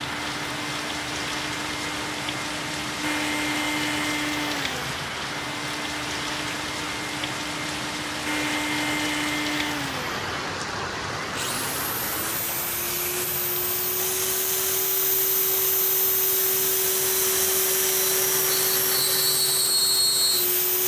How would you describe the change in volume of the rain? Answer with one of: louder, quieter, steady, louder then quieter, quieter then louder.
quieter.